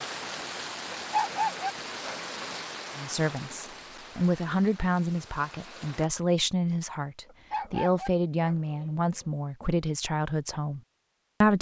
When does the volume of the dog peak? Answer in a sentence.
The volume of the dog peaks at 1 second.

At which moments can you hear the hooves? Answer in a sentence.
The hooves can't be heard in this clip.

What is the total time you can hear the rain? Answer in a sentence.
You can hear the rain for 6 seconds altogether.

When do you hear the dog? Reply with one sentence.
You can hear the dog from 0.9 to 2.5 s and from 7.2 to 9.1 s.